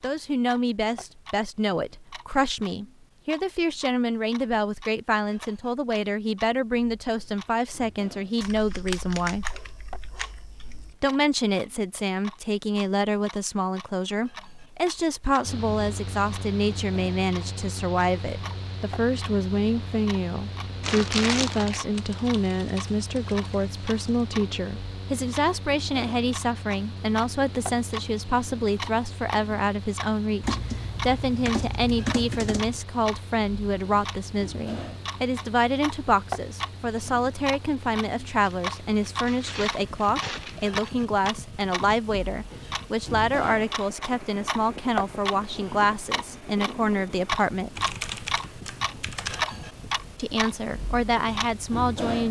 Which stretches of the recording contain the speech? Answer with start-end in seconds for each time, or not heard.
0.0-9.6, 11.0-47.8, 50.1-52.2.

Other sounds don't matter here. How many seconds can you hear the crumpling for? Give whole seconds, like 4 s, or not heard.
3 s.